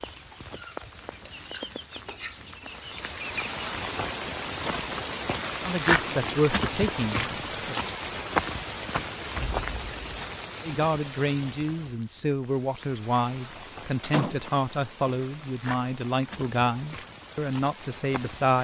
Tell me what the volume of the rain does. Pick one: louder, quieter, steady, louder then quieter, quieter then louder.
louder then quieter.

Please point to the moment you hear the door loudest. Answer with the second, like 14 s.
14 s.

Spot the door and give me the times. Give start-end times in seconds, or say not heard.
2.0-2.7, 9.3-10.2, 13.6-14.3.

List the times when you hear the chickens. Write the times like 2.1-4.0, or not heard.
0.0-3.5.